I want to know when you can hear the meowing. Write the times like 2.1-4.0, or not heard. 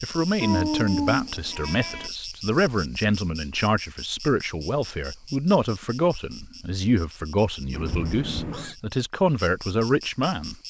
0.4-2.1, 7.7-8.8.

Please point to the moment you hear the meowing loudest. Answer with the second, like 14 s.
1 s.